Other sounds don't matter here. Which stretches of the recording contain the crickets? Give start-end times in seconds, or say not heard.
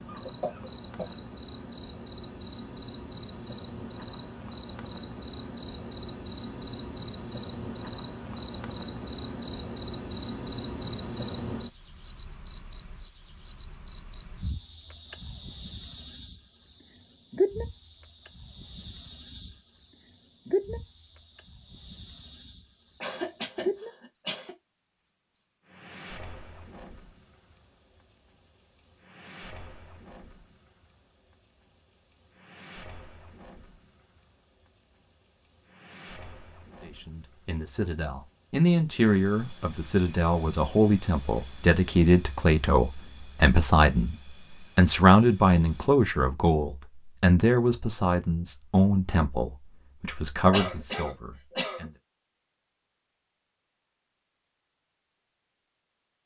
0.0-45.9.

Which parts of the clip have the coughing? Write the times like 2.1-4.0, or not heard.
0.1-1.2, 23.0-24.6, 50.5-51.9.